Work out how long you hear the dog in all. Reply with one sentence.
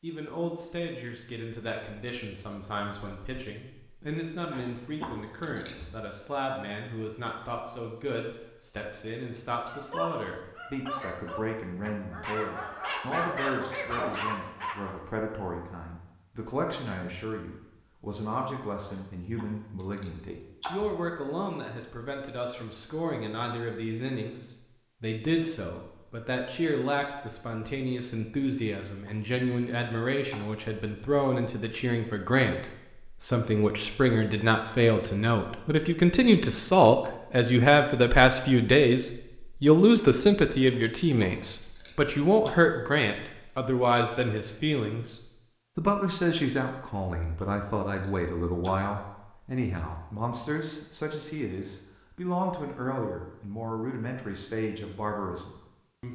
The dog can be heard for 5 seconds in total.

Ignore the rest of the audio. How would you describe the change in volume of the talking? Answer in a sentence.
The volume of the talking goes up, then down.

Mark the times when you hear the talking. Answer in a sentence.
The talking can be heard from 0.0 to 56.1 s.